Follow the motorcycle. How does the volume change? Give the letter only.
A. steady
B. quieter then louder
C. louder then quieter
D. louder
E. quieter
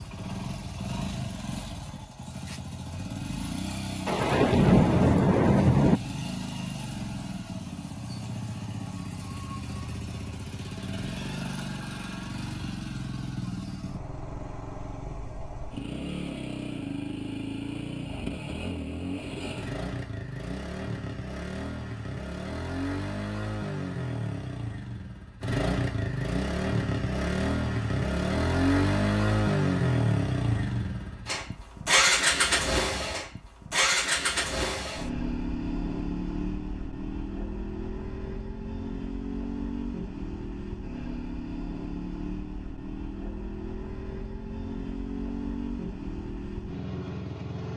C.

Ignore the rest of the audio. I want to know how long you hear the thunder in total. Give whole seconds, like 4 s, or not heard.
2 s.